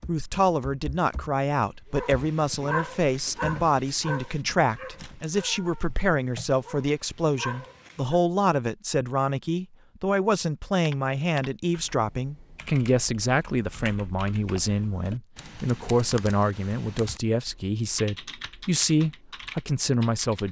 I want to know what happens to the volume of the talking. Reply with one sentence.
The loudness of the talking stays about the same.